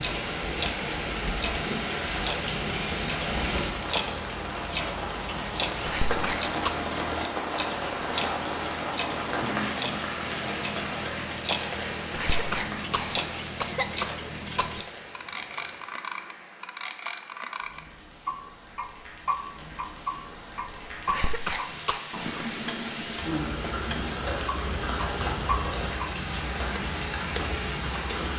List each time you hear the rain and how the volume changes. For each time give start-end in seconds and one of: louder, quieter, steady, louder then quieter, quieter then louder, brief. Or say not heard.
0.0-28.3 quieter then louder.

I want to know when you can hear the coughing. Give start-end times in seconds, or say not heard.
5.8-6.8, 12.1-14.8, 21.1-22.0.